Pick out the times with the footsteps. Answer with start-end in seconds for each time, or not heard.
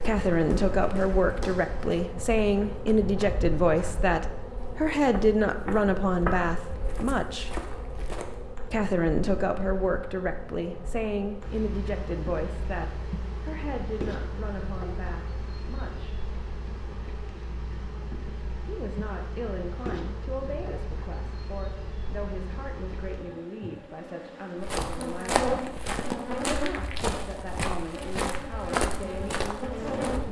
0.0-8.4, 24.6-30.2.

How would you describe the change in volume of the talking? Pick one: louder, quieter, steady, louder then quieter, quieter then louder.
quieter.